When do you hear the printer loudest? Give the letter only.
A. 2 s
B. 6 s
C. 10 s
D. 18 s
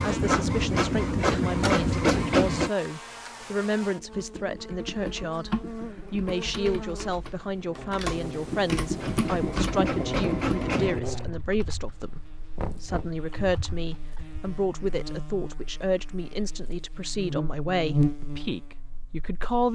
A.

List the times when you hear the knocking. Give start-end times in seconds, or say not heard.
12.6-13.2.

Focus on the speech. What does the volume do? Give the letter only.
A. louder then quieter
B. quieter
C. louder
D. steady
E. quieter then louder
D.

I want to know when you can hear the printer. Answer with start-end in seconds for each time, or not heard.
0.0-2.7, 8.9-11.0.